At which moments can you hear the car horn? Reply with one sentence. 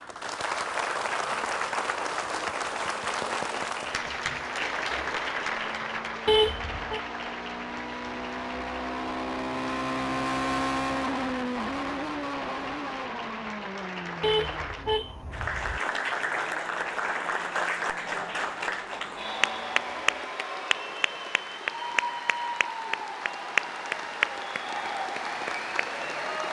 You can hear the car horn from 6.2 to 7.0 s and from 14.2 to 15.8 s.